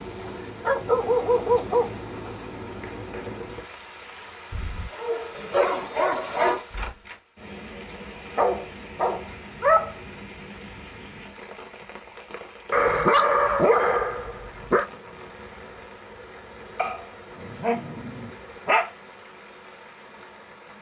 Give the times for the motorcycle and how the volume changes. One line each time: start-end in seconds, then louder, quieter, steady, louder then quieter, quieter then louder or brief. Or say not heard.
not heard.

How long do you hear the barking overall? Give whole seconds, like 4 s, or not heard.
10 s.